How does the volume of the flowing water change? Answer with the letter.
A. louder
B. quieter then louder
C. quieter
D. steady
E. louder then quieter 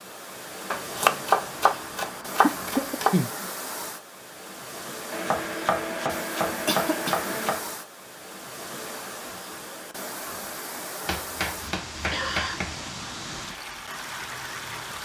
D.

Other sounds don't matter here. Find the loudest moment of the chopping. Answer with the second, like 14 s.
1 s.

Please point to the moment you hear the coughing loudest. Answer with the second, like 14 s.
3 s.